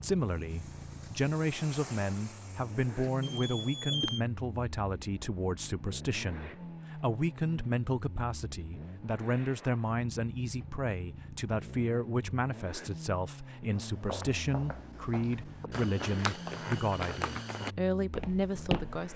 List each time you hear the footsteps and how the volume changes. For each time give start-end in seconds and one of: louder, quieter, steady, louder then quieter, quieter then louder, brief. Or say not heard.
13.7-19.1 louder then quieter.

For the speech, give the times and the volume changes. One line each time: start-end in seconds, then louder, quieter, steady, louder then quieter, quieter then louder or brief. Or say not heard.
0.0-19.1 steady.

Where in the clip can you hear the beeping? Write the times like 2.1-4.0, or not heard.
3.2-4.2.